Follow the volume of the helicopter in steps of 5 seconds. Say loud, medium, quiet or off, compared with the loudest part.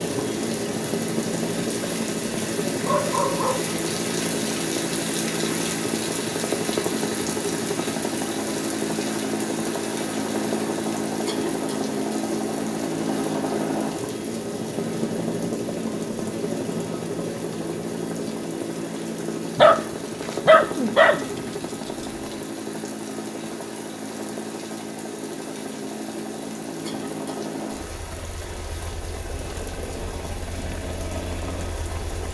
loud, loud, loud, loud, medium, medium, medium.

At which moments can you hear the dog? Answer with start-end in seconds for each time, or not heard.
2.8-3.8, 19.6-22.1.